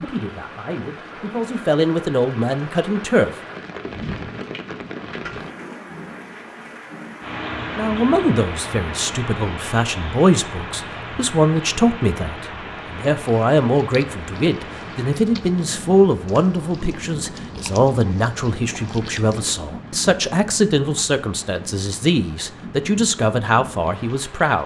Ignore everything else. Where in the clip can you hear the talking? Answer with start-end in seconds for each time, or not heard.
0.0-3.3, 7.8-24.6.